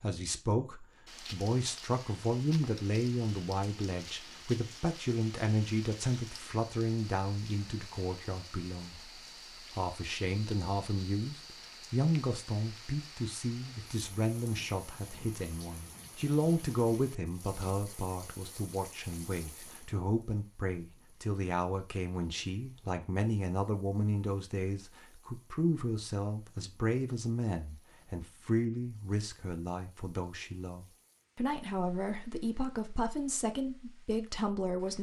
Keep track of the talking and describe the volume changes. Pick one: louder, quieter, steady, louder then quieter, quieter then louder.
steady.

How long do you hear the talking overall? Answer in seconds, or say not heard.
35 s.